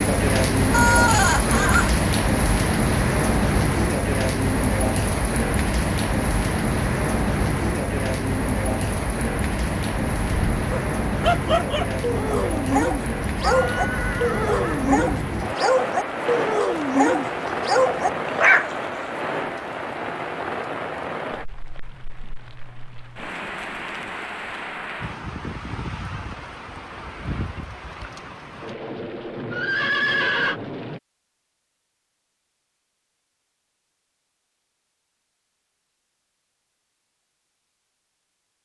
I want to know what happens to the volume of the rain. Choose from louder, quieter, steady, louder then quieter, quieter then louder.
quieter.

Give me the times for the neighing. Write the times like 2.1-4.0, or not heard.
0.7-1.9, 13.4-14.9, 29.5-30.6.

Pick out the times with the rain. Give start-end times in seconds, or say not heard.
0.0-31.0.